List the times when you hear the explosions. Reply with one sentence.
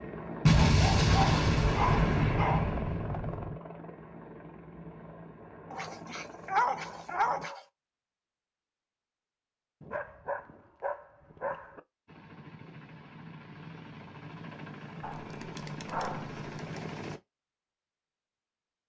The explosions can be heard from 0.5 to 3.6 s.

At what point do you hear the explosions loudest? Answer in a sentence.
The loudest moment of the explosions is at 1 second.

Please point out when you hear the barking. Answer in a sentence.
You can hear the barking from 0.5 to 2.8 s, from 5.7 to 7.6 s, from 9.8 to 11.8 s and from 15.0 to 16.8 s.